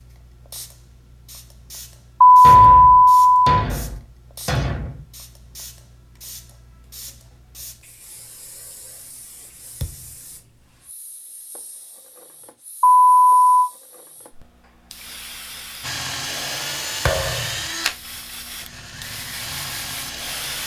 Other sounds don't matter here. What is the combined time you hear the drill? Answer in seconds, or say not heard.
5 s.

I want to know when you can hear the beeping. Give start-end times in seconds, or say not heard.
2.2-3.5, 12.8-13.7.